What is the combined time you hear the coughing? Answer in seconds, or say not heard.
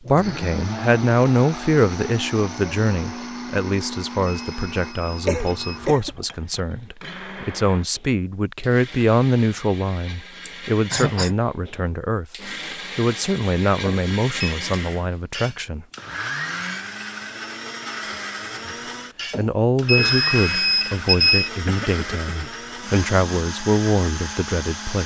3 s.